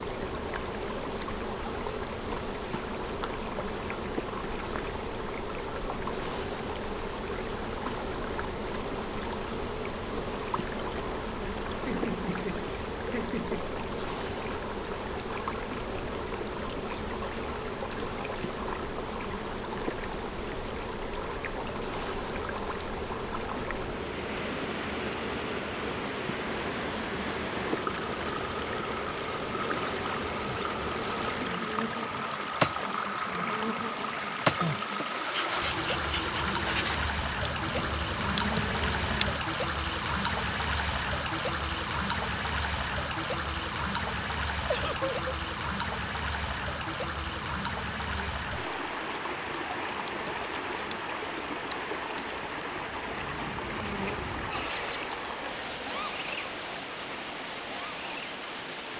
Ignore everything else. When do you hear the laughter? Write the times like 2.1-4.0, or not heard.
11.8-13.7, 44.6-45.1.